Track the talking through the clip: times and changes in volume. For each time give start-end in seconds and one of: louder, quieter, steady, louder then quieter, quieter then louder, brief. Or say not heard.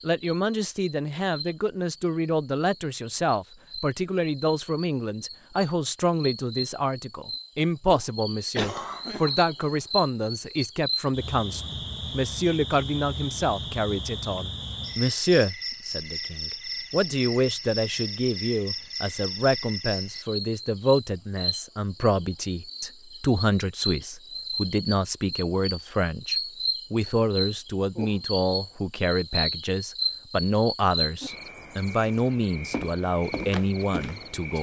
0.0-34.5 steady.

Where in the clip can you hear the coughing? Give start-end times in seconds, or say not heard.
8.6-9.3.